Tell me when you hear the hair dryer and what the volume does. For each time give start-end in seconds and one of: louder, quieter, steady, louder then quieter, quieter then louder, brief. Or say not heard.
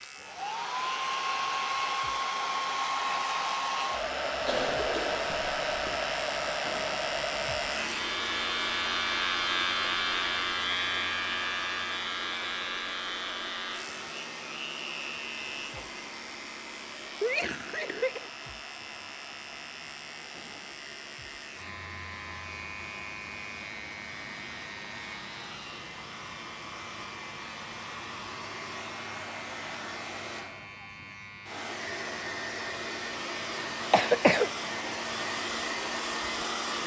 0.0-36.8 quieter then louder.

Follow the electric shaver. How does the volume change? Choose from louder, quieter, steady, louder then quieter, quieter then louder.
louder then quieter.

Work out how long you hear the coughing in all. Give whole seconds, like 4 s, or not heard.
3 s.